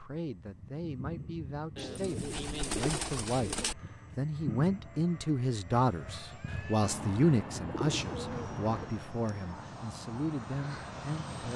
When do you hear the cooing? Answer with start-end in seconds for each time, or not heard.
1.8-3.8, 6.8-8.9.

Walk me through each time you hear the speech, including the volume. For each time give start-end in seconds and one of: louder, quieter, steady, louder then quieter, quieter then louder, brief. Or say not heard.
0.0-11.5 louder then quieter.